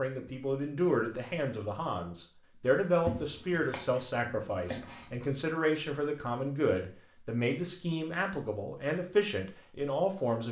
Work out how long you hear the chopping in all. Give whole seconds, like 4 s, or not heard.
2 s.